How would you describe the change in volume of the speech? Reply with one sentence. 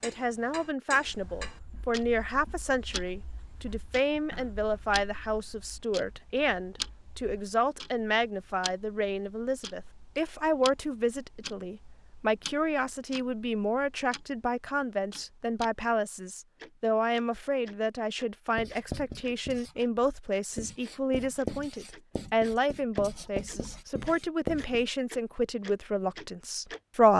The volume of the speech stays about the same.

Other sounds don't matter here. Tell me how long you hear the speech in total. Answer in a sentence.
The speech can be heard for 27 seconds in total.